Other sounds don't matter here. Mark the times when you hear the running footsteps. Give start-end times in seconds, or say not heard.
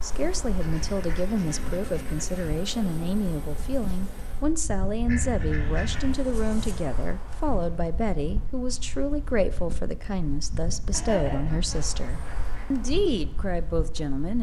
not heard.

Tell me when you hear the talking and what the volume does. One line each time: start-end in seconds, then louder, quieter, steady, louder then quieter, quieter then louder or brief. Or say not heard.
0.0-14.3 steady.